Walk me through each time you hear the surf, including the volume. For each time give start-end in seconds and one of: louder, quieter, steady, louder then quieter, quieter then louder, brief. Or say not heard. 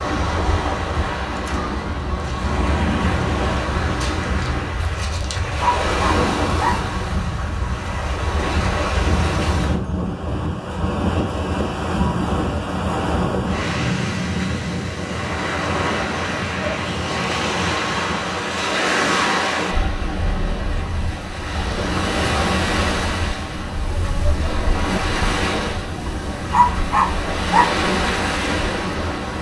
0.0-29.3 steady.